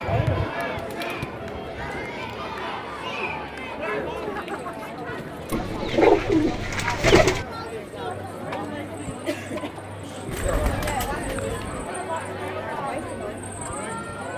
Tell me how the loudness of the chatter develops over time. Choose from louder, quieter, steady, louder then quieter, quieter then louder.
steady.